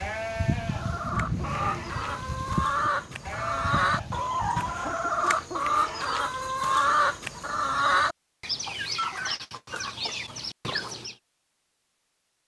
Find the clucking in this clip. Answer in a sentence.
The clucking can be heard from 0.7 to 11.2 s.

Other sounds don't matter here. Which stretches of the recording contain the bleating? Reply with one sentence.
The bleating can be heard from 0.0 to 5.0 s.